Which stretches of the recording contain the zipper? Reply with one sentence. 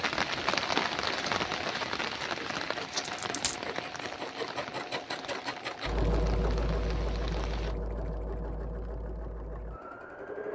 You can't hear the zipper here.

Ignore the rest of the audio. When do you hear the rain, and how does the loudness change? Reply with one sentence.
The rain can be heard from 0.0 to 7.8 s, getting quieter.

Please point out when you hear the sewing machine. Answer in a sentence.
You can hear the sewing machine from 0.2 to 10.4 s.